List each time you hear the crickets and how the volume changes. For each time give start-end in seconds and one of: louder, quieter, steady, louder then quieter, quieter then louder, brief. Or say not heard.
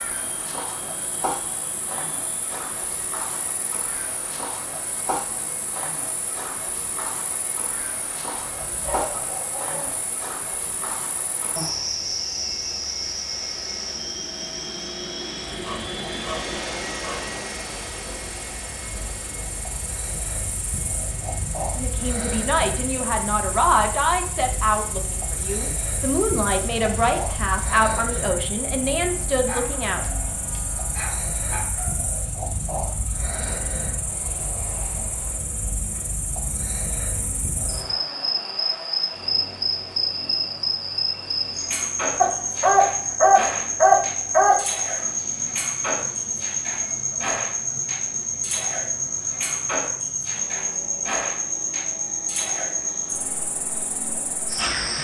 0.0-54.9 louder.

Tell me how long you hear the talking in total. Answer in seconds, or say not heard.
8 s.